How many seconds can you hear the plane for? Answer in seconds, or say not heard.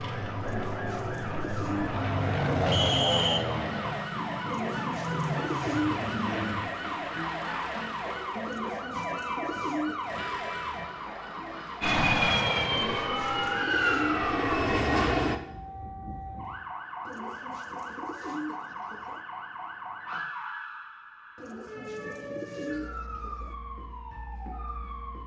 10 s.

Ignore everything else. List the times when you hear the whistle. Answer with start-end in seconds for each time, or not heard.
2.7-3.4.